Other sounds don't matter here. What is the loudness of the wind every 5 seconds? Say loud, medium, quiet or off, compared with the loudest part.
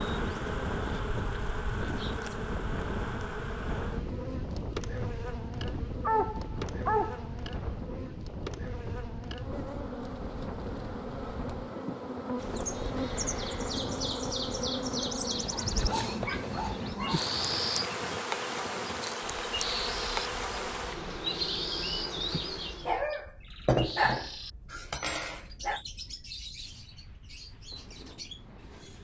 loud, loud, loud, medium, quiet, quiet.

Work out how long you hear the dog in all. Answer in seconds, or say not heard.
6 s.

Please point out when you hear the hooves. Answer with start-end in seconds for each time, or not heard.
not heard.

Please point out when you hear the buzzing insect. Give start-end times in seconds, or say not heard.
0.0-23.0.